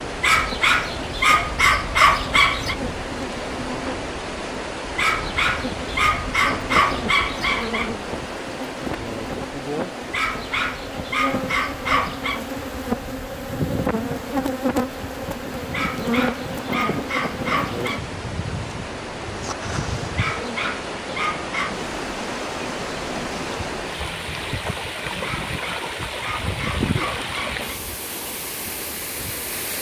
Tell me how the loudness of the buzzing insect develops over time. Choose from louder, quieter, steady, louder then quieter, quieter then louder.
louder then quieter.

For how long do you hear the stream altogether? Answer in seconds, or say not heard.
30 s.